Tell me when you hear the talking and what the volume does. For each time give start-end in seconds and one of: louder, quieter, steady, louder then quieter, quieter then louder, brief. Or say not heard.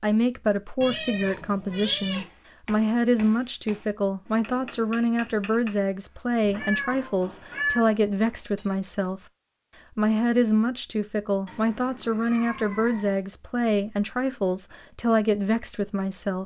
0.0-9.2 steady
9.9-16.4 steady.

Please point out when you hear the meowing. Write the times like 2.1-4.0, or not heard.
0.8-2.2, 6.5-7.8, 11.4-13.2.